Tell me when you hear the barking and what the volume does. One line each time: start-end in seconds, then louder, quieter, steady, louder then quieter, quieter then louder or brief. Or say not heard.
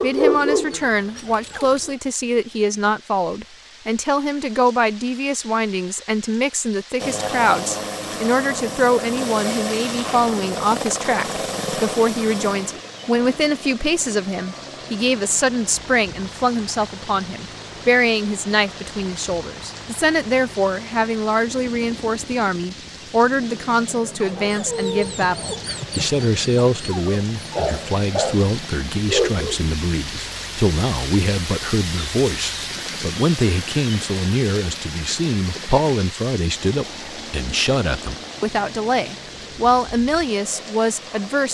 0.0-1.9 brief
24.1-29.6 quieter then louder.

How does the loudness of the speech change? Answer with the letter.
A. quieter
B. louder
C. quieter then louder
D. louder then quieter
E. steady
E.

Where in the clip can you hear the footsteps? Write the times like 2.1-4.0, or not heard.
not heard.